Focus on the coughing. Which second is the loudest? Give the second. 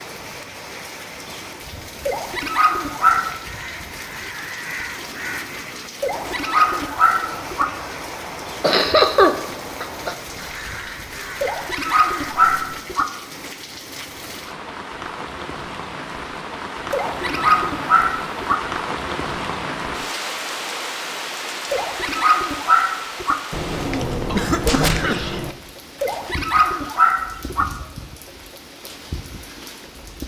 9 s.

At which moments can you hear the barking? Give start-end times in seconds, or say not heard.
2.0-3.4, 6.0-7.7, 11.4-13.1, 16.9-18.6, 21.7-23.4, 26.0-27.6.